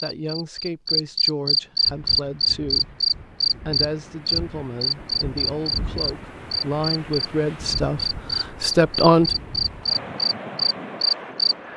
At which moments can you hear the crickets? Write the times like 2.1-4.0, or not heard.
0.0-11.6.